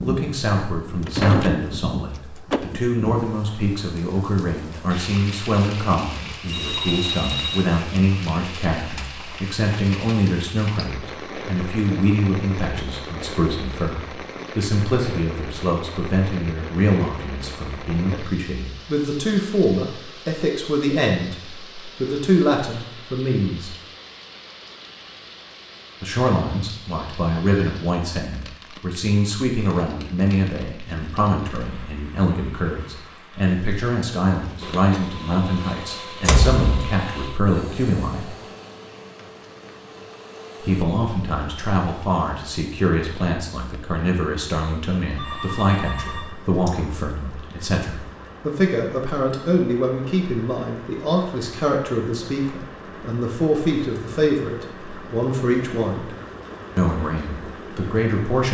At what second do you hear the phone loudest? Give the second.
7 s.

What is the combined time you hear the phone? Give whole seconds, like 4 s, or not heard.
3 s.